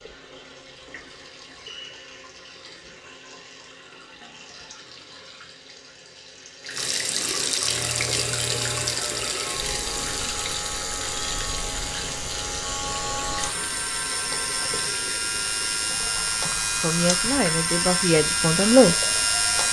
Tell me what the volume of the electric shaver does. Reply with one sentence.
The loudness of the electric shaver goes up.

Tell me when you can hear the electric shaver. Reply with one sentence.
You can hear the electric shaver from 7.5 to 19.6 s.